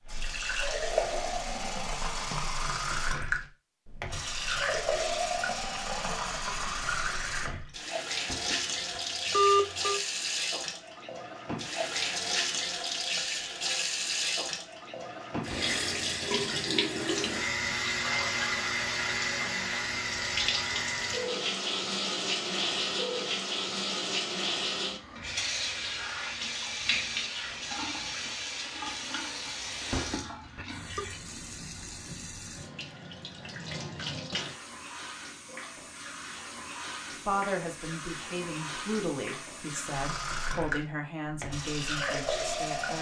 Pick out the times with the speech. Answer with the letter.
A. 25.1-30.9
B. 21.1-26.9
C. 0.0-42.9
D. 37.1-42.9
D.